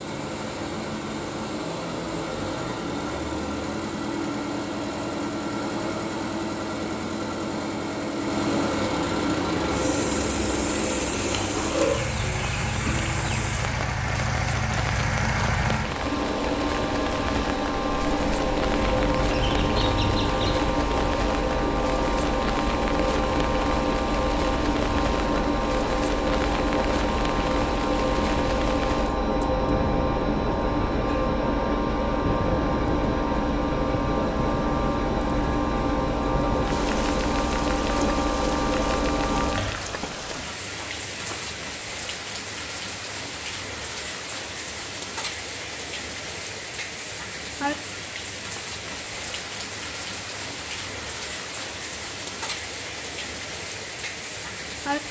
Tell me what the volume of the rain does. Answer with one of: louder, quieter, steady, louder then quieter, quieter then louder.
steady.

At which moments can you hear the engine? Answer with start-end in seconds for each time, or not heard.
0.0-39.8.